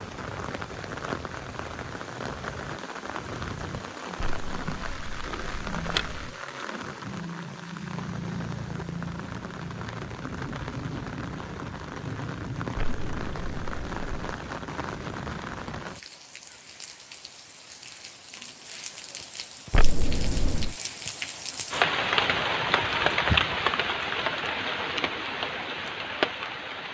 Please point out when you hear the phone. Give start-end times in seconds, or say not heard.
4.2-6.3, 12.8-14.4, 19.7-20.8.